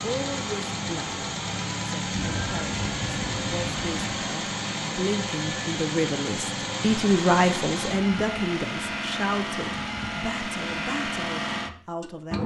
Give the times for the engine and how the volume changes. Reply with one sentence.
The engine can be heard from 0.0 to 12.4 s, at a steady volume.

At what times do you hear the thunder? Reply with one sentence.
The thunder can be heard from 2.1 to 4.2 s.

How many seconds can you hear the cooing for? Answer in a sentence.
You can't hear the cooing here.